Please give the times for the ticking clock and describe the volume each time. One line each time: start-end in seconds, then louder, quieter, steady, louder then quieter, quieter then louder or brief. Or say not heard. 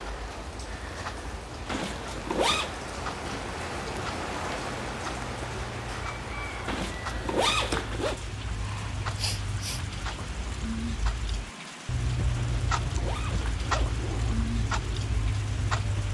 0.0-16.0 louder.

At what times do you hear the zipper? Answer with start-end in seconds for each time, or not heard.
1.6-2.8, 6.7-8.2, 12.3-14.3.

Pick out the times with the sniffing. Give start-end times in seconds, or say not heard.
9.2-9.8.